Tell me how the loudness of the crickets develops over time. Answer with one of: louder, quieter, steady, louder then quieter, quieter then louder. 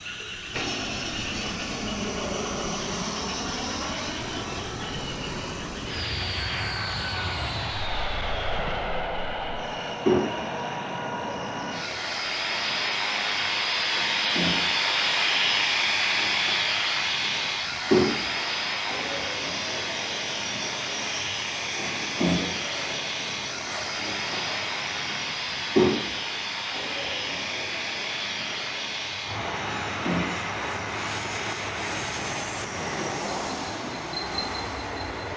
louder then quieter.